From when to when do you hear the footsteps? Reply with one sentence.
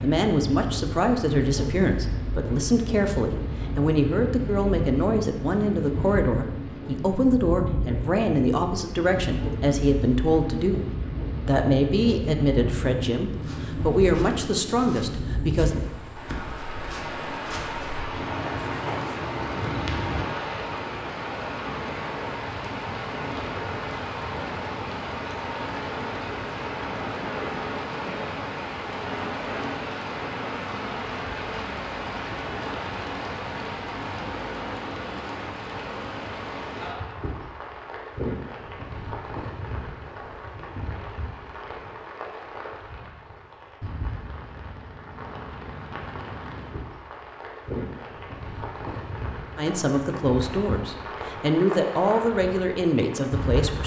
The footsteps can be heard from 13.3 to 20.3 s.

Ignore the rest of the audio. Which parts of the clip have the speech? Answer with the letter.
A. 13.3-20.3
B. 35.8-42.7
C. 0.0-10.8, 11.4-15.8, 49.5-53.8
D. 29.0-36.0
C.